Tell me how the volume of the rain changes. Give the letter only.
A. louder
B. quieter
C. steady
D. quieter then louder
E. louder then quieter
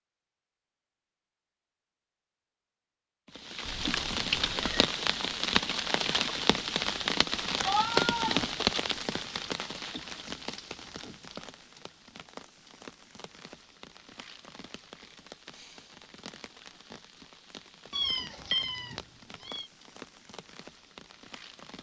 B.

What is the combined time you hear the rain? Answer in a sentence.
You can hear the rain for 18 seconds altogether.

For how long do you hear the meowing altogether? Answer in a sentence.
You can hear the meowing for 4 seconds altogether.